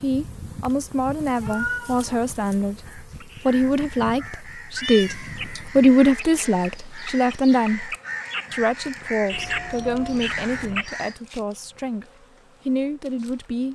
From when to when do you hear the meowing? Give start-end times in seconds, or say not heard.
0.8-2.6, 4.8-5.7, 9.3-10.8.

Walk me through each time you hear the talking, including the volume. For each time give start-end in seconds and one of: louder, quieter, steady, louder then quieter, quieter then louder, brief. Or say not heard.
0.0-12.1 louder then quieter
12.7-13.7 brief.